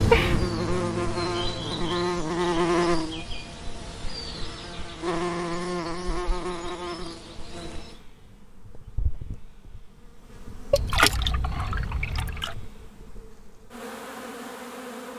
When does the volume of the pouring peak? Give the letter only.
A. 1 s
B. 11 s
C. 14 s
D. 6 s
B.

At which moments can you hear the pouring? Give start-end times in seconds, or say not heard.
10.7-12.6.